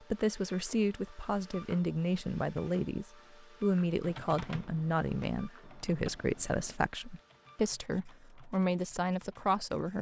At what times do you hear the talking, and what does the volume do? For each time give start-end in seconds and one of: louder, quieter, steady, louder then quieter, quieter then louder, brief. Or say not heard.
0.1-9.9 steady.